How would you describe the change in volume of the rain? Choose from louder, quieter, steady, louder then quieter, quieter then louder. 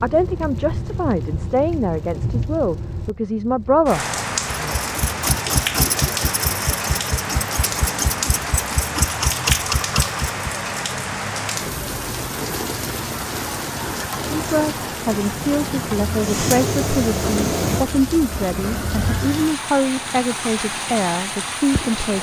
steady.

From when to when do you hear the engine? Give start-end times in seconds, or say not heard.
4.6-10.4, 16.1-19.3.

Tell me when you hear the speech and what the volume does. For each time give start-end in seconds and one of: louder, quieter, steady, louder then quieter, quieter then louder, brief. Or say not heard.
0.0-4.8 louder
14.2-22.1 steady.